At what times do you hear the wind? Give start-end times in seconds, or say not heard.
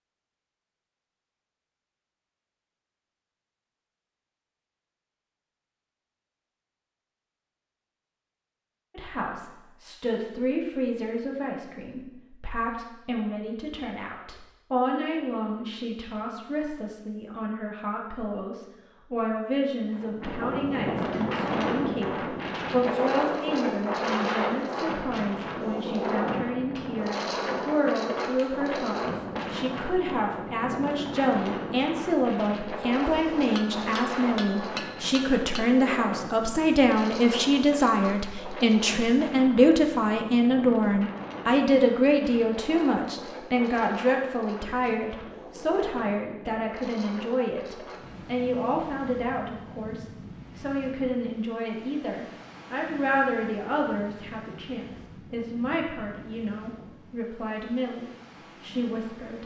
19.9-59.4.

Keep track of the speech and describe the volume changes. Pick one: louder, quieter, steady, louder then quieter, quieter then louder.
louder then quieter.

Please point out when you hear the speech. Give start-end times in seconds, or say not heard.
8.9-59.4.